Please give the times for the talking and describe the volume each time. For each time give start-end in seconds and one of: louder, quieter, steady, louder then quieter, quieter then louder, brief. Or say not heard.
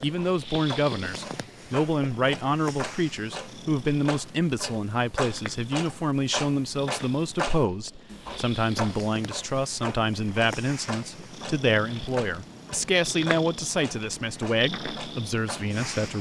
0.0-16.1 steady.